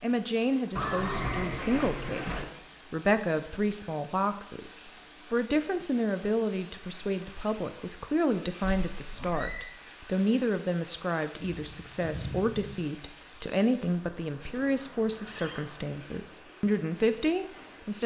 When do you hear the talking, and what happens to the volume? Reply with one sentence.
You can hear the talking from 0.0 to 18.0 s, at a steady volume.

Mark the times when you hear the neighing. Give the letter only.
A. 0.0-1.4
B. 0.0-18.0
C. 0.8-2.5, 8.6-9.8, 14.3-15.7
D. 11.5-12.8
C.